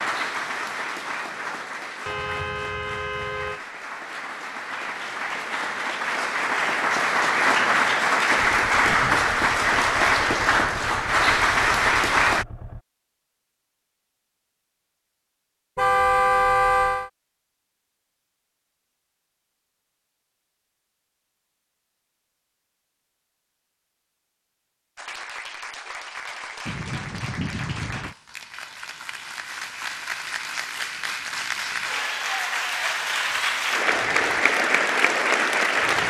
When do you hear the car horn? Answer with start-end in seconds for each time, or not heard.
2.0-3.6, 15.8-17.1, 26.6-28.1.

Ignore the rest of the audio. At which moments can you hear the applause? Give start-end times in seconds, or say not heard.
0.0-12.4, 24.9-36.0.